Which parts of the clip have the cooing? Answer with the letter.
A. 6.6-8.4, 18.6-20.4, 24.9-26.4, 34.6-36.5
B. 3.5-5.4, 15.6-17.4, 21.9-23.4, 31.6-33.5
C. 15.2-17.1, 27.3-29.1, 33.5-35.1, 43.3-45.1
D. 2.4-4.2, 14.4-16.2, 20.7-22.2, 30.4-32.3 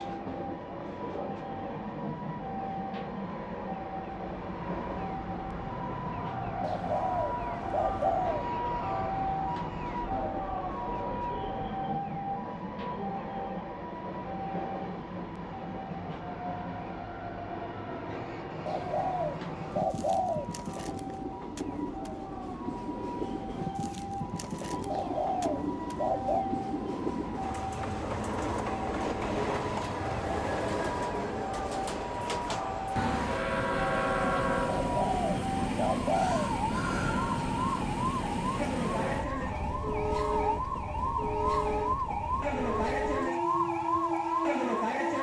A.